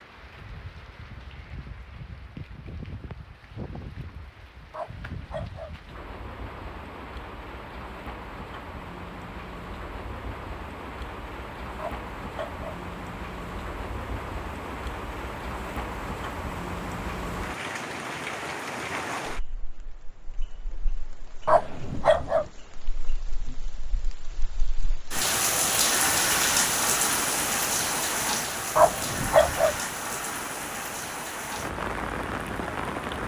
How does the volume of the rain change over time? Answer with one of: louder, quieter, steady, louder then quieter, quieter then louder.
louder.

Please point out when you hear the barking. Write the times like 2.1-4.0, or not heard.
4.7-5.8, 11.8-12.8, 21.4-22.5, 28.8-29.8.